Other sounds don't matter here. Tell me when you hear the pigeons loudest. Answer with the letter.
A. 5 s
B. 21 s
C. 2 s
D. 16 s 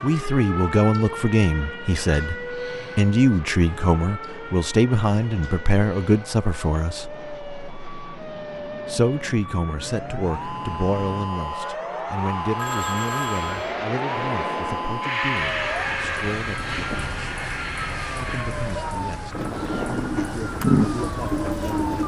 B.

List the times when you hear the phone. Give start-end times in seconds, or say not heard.
12.6-13.8.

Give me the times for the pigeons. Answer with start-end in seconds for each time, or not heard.
19.2-22.0.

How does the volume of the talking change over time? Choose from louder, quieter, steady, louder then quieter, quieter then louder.
quieter.